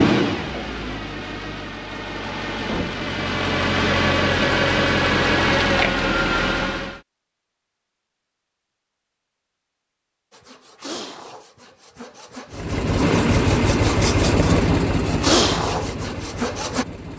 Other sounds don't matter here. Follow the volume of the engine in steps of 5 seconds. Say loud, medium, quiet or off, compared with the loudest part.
loud, loud, loud, medium.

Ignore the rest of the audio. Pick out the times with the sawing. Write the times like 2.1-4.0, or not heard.
10.3-16.9.